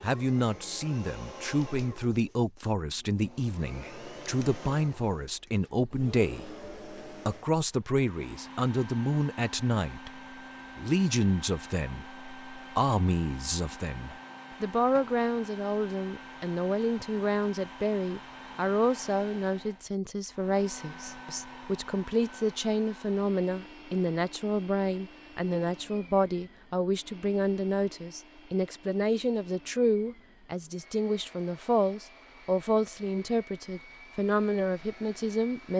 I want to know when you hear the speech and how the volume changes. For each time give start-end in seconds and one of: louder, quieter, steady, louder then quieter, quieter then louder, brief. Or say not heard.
0.0-35.7 steady.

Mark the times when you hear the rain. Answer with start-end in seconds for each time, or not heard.
not heard.